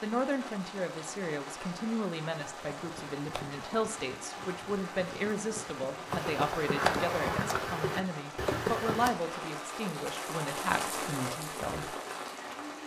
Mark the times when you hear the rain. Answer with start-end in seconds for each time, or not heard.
0.0-12.8.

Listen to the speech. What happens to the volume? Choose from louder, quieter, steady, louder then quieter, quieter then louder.
steady.